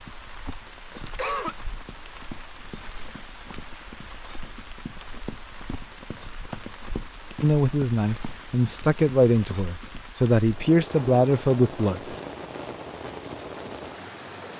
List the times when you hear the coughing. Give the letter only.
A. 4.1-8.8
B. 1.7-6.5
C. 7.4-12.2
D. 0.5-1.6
D.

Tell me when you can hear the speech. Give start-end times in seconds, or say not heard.
7.4-12.2.